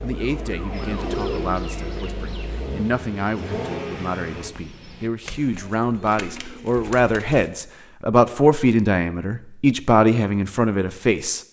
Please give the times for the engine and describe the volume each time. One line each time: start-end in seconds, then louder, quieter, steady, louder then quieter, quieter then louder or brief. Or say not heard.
0.0-4.5 louder.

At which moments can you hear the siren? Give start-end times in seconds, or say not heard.
0.0-2.6.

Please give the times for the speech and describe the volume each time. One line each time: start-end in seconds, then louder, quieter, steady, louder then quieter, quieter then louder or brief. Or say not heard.
0.0-11.4 louder.